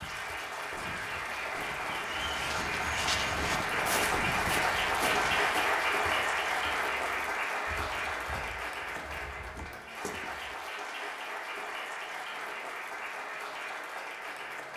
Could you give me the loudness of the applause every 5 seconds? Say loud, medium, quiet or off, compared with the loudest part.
loud, loud, medium.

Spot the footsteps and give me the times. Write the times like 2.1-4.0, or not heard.
2.0-10.6.